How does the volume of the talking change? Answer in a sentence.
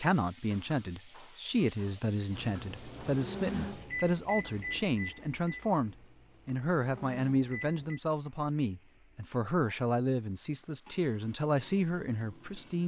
The loudness of the talking stays about the same.